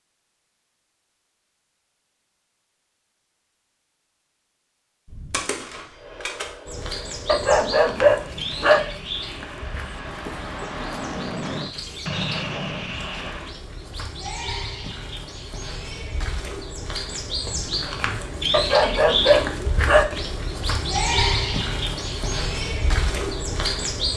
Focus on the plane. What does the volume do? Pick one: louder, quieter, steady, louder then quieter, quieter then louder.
louder.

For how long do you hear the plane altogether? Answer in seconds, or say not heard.
8 s.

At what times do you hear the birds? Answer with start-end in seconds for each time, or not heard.
6.7-24.1.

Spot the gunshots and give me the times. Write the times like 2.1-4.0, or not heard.
5.0-6.5.